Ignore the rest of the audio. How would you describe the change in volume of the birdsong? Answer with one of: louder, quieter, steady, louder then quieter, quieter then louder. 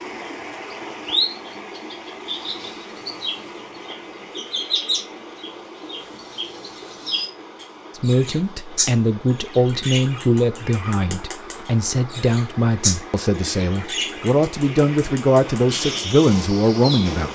steady.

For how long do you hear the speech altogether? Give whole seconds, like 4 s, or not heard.
9 s.